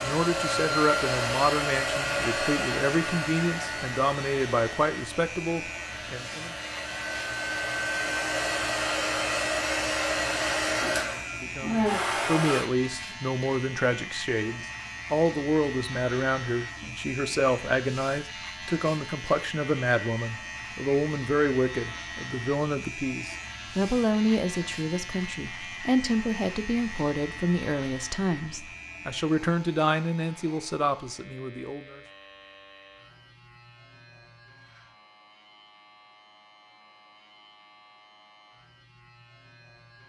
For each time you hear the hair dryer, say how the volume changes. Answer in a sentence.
The hair dryer can be heard from 0.0 to 12.7 s, getting quieter then louder.